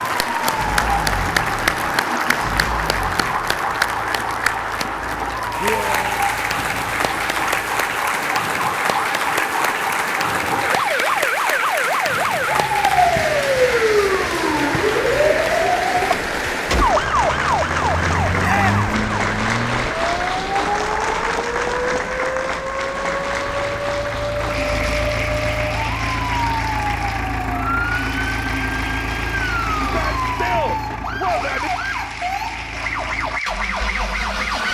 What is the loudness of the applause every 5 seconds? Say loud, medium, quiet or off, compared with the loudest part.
loud, loud, loud, loud, loud, medium, medium.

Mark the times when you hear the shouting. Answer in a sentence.
You can hear the shouting from 5.5 to 6.2 s, from 18.4 to 18.9 s and from 29.9 to 31.7 s.